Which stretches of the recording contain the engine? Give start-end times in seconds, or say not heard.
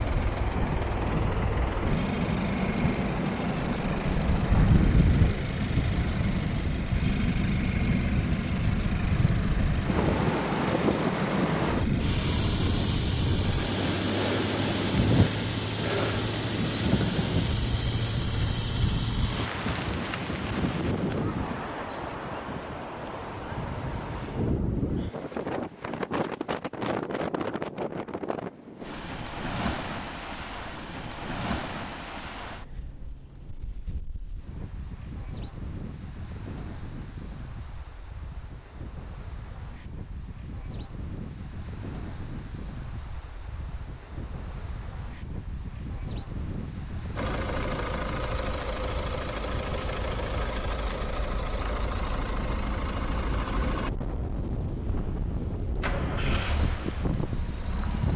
0.0-19.5, 47.1-58.1.